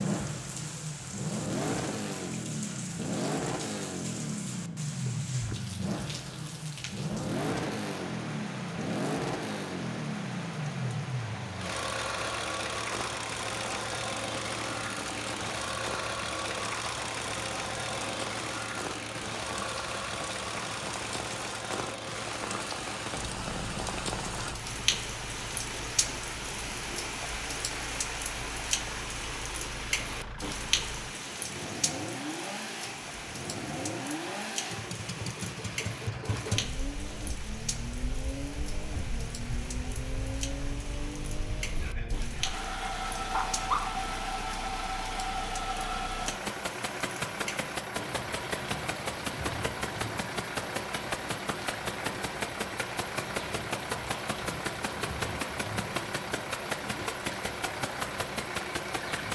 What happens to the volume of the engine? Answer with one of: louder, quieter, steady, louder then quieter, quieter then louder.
quieter then louder.